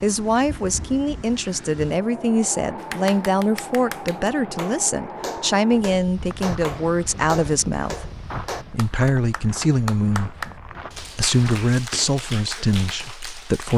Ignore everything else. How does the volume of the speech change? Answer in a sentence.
The volume of the speech stays about the same.